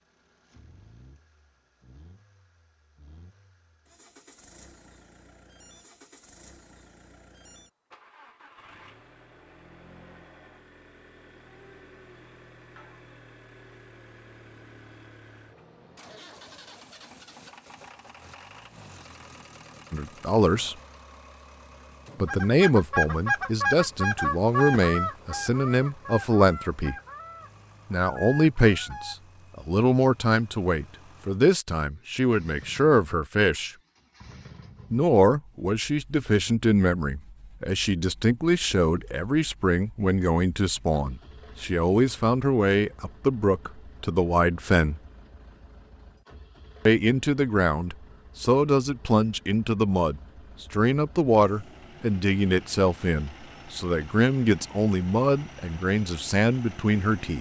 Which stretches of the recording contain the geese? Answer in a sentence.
You can hear the geese from 22.2 to 29.1 s.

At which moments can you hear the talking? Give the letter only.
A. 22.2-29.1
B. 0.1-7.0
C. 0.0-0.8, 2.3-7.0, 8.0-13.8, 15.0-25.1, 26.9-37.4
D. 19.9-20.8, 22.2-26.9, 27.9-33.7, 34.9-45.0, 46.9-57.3
D.